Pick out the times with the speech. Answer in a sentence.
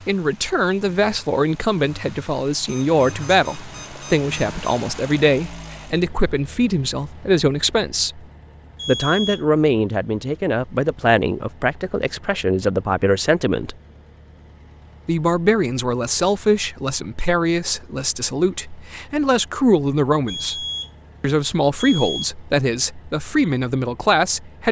The speech can be heard from 0.1 to 8.2 s, from 8.8 to 13.8 s and from 15.1 to 24.6 s.